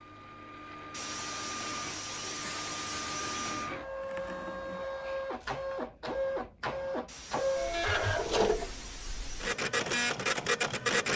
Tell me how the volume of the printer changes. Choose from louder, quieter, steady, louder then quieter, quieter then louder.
louder.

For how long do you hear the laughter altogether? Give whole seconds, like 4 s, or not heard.
5 s.